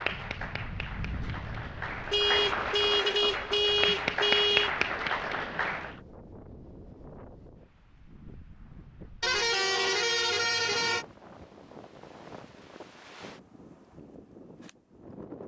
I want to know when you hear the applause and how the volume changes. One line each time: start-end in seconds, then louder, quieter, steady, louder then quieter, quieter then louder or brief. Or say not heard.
0.0-6.0 louder.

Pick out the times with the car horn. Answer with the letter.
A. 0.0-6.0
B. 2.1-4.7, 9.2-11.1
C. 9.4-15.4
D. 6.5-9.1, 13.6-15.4
B.